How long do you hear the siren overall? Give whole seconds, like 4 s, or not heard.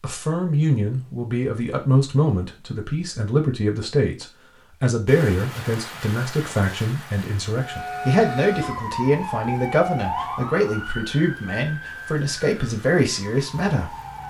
7 s.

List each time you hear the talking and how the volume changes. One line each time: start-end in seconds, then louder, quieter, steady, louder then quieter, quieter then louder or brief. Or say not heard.
0.0-13.9 steady.